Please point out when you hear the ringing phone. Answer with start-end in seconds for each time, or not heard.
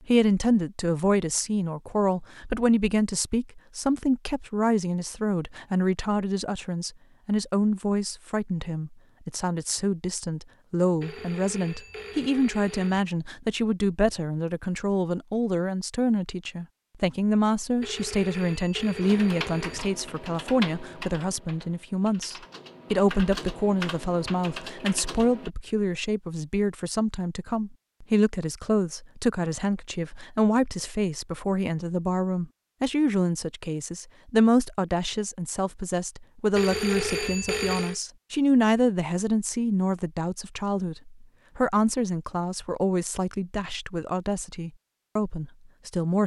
11.0-13.0, 17.8-19.9, 36.5-38.0.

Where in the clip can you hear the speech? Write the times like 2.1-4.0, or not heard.
0.1-46.2.